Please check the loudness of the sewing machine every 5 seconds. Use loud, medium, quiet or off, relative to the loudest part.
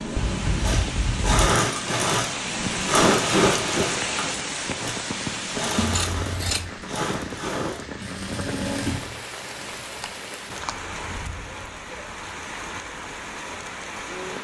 loud, medium, off.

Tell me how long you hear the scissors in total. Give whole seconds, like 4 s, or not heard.
3 s.